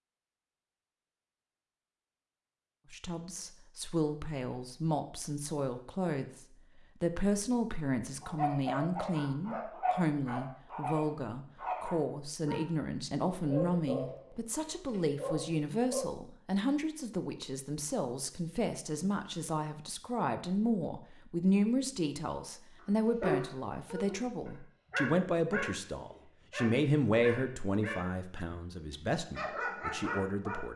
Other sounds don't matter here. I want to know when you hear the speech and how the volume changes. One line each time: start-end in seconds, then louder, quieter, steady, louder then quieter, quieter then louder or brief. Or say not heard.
2.9-30.7 steady.